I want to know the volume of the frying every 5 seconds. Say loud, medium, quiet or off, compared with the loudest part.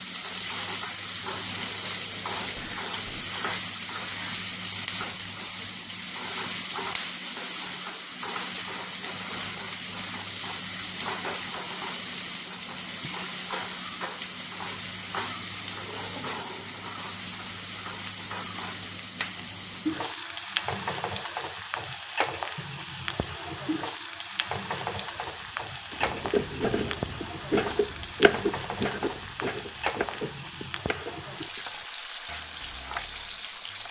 loud, loud, loud, loud, loud, loud, medium.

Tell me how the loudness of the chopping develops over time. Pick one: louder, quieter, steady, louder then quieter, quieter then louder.
quieter.